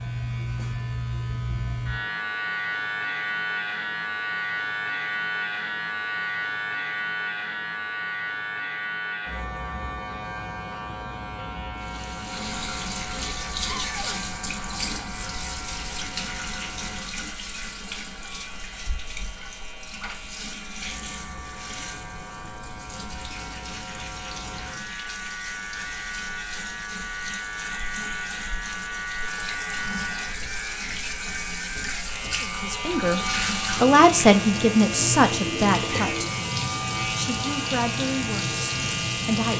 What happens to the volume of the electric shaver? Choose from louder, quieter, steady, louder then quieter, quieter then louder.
quieter then louder.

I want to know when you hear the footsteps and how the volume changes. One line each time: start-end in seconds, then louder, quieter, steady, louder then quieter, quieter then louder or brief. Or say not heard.
not heard.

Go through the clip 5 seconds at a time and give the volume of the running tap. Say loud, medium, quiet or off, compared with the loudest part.
off, off, loud, medium, medium, medium, loud, loud.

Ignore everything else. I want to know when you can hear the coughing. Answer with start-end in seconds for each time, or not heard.
not heard.